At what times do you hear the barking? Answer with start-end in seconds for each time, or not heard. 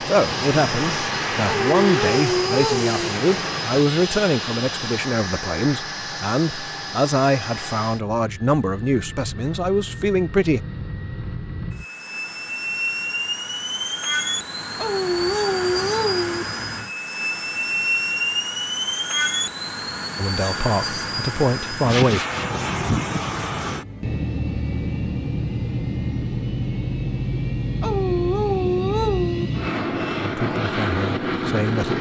1.4-3.1, 14.8-16.4, 27.8-29.4.